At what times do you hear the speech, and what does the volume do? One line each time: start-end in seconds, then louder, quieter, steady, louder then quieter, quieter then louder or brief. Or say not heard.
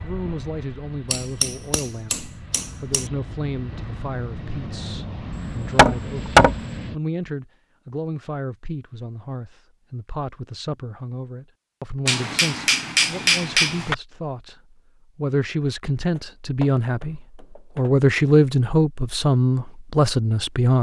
0.0-20.7 louder.